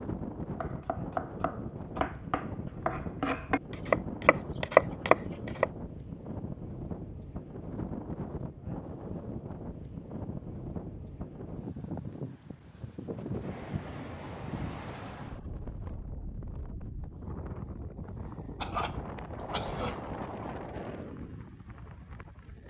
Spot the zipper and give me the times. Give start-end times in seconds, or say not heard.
not heard.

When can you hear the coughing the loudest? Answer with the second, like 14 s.
19 s.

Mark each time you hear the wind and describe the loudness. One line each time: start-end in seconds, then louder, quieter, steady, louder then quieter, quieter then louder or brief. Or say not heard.
0.0-22.6 steady.